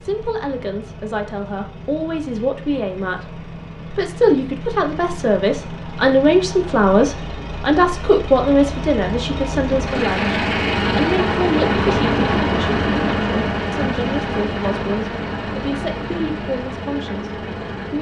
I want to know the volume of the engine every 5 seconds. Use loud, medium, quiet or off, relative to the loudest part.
quiet, medium, loud, medium.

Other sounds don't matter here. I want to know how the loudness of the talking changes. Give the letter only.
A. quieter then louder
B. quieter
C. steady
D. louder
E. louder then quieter
E.